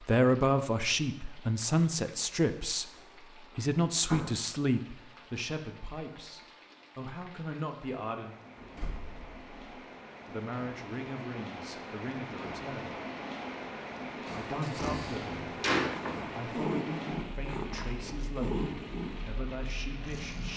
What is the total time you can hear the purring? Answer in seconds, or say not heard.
6 s.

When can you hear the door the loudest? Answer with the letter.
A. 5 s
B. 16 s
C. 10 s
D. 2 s
B.